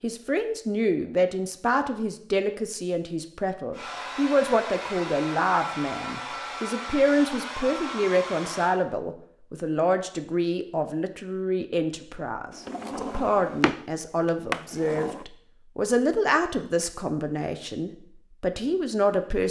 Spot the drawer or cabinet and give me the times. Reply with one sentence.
You can hear the drawer or cabinet from 12.5 to 15.2 s.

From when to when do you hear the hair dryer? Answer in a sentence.
The hair dryer can be heard from 3.7 to 8.8 s.